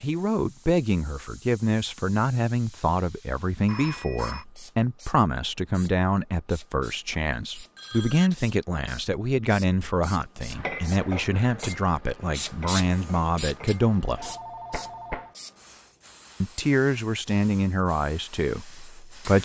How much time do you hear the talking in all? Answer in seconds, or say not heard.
17 s.